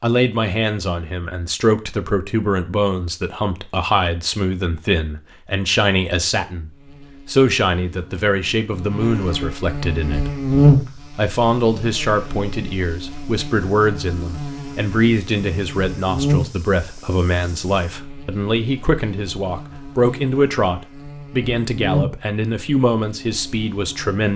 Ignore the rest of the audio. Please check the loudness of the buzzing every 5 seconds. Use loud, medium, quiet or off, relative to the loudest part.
off, medium, loud, medium, medium.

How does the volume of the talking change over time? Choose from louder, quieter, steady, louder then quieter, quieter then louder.
steady.